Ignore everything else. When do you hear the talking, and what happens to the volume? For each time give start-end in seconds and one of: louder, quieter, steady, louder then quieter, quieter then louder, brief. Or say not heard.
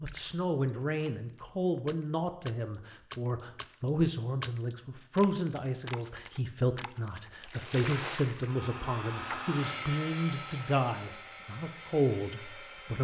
0.0-12.9 steady.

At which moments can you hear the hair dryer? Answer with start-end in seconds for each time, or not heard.
8.3-12.9.